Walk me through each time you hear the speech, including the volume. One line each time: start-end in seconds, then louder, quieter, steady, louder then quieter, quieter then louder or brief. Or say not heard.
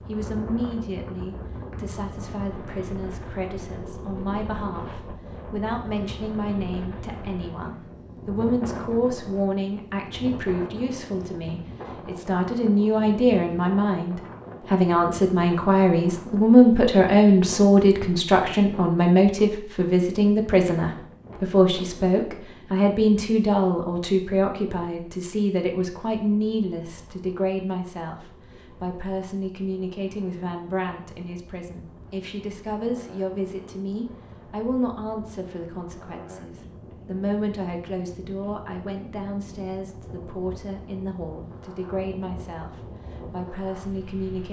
0.0-44.4 louder then quieter.